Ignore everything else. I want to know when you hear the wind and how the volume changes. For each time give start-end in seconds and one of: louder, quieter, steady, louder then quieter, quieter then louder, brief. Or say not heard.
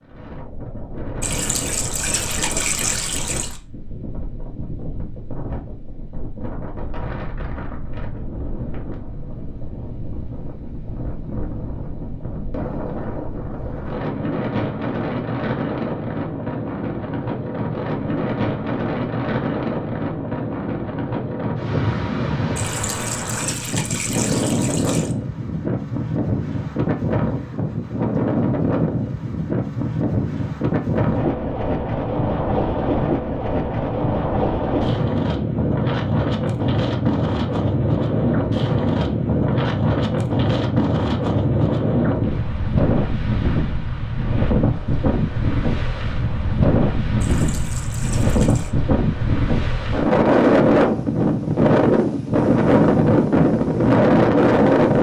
0.0-54.9 louder.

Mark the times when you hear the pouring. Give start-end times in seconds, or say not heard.
1.2-3.6, 22.6-25.1, 47.2-48.8.